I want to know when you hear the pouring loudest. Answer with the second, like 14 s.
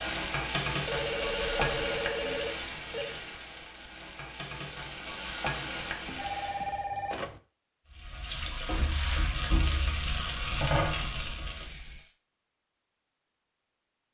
9 s.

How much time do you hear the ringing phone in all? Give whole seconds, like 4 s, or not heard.
6 s.